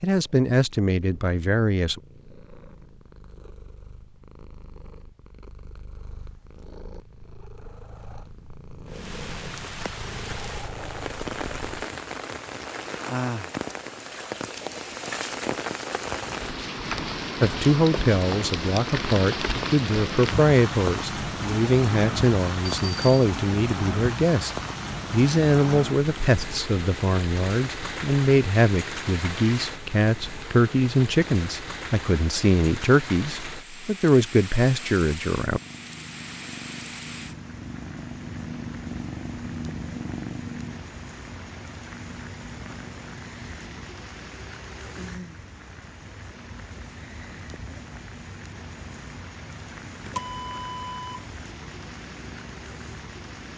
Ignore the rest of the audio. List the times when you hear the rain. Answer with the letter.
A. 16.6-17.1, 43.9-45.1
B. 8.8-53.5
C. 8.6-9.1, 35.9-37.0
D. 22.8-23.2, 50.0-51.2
B.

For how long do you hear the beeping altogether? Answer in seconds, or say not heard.
2 s.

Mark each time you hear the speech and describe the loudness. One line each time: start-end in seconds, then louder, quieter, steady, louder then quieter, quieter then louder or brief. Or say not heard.
0.0-2.0 brief
17.4-24.5 steady
25.1-35.6 steady.